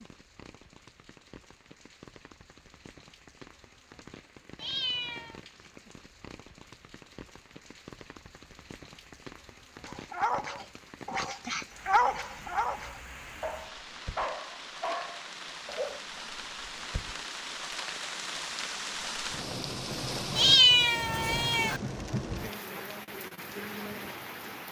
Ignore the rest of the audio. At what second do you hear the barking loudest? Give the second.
12 s.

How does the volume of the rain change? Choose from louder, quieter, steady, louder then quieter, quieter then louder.
louder.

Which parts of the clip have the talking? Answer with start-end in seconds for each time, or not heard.
not heard.